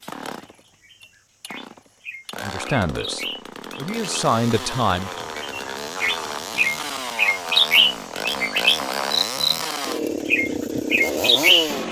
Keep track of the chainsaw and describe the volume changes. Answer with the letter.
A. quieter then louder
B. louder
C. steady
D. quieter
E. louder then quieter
B.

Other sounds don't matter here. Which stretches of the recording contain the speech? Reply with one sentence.
The speech can be heard from 2.4 to 5.1 s.